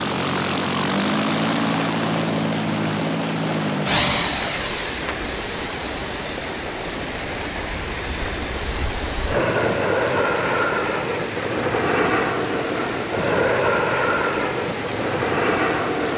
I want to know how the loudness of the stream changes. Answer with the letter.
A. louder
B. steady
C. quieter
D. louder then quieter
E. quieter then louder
B.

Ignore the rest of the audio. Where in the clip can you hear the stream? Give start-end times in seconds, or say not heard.
0.0-16.1.